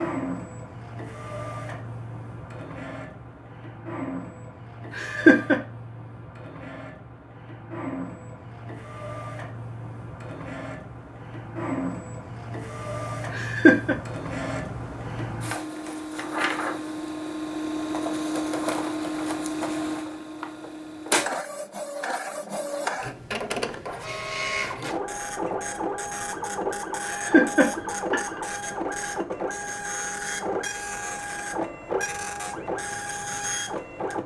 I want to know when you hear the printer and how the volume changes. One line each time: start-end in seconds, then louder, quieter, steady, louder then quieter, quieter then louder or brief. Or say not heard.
0.0-34.2 louder.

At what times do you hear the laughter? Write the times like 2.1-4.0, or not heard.
5.0-5.6, 13.3-13.9, 27.0-28.4.